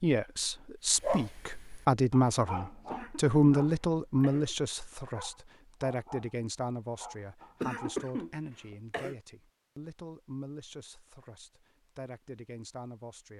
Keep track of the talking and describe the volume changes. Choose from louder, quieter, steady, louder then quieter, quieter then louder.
quieter.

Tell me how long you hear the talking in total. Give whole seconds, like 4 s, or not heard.
13 s.